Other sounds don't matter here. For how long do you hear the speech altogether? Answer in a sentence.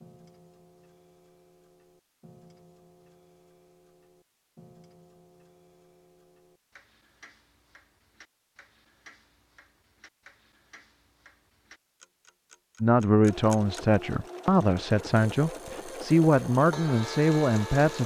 The speech can be heard for 5 seconds in total.